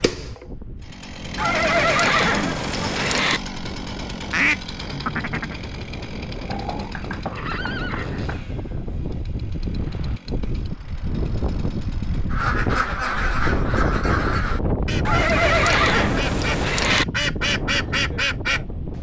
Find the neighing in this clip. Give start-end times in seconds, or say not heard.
1.4-3.4, 6.5-8.4, 15.1-17.1.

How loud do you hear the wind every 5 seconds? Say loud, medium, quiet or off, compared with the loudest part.
quiet, medium, loud, loud.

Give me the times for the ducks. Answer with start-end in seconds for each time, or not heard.
4.3-5.5, 12.3-18.6.